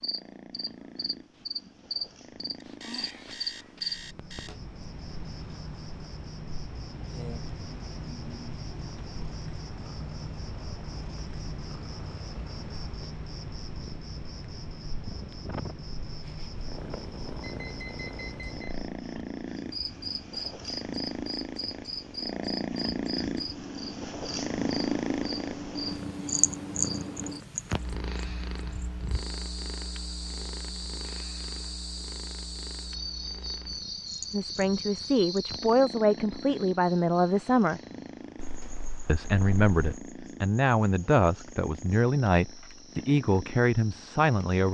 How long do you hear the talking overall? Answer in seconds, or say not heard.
9 s.